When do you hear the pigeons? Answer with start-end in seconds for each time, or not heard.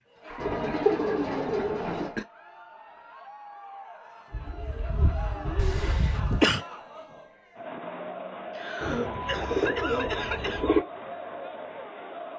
0.4-2.1, 4.3-6.5, 8.8-10.8.